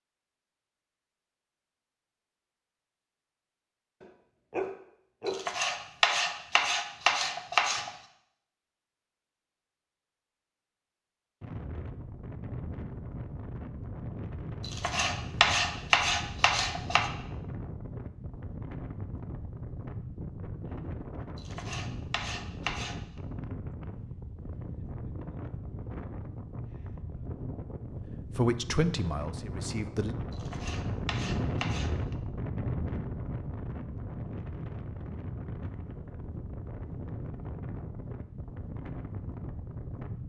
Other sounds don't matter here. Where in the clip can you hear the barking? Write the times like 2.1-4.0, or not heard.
4.0-5.5.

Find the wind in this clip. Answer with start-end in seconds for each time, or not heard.
11.4-40.2.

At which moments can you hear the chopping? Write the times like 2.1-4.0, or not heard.
5.2-7.9, 14.6-17.1, 21.4-22.9, 30.3-32.1.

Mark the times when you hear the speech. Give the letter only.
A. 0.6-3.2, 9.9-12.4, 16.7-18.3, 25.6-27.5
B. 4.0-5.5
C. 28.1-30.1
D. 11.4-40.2
C.